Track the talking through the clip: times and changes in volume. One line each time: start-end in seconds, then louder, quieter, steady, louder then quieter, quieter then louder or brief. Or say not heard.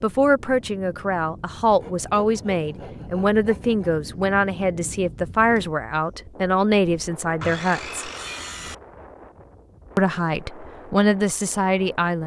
0.0-8.0 steady
9.9-12.2 brief.